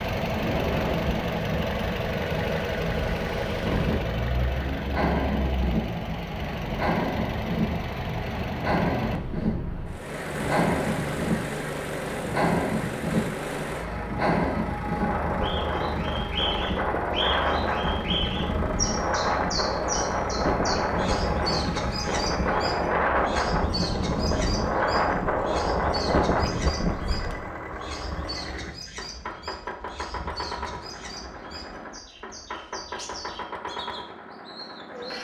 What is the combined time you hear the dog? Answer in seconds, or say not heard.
not heard.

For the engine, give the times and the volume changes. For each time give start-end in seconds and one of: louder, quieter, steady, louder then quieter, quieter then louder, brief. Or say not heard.
0.0-35.1 quieter.